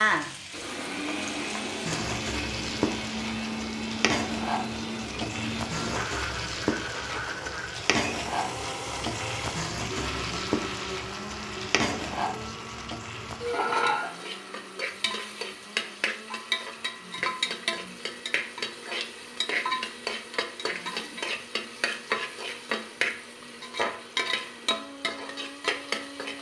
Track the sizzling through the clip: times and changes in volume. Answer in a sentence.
The sizzling can be heard from 0.0 to 26.3 s, at a steady volume.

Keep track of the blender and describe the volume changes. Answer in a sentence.
The loudness of the blender goes down.